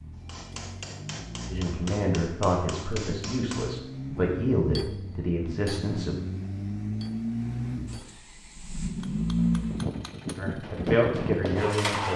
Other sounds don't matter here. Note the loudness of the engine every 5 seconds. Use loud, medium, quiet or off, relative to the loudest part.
medium, loud, loud.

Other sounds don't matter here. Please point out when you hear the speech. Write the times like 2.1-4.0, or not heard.
1.5-6.2, 10.3-12.1.